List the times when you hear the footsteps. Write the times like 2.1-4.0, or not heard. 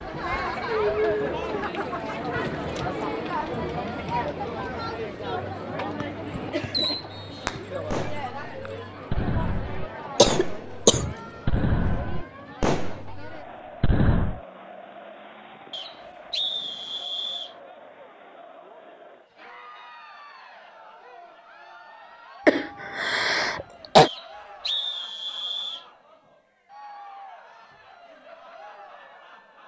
not heard.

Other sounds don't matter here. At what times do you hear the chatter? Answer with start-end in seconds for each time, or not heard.
0.0-29.6.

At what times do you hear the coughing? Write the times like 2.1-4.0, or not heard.
10.2-11.2, 22.4-24.1.